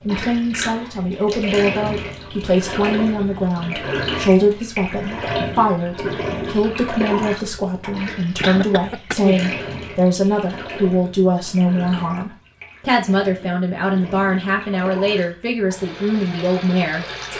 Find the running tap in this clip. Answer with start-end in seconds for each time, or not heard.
0.0-17.3.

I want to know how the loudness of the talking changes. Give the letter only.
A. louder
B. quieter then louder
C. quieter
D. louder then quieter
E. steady
E.